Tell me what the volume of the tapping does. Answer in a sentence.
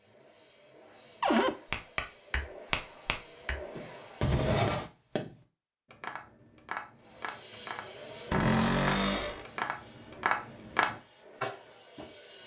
The loudness of the tapping goes down, then up.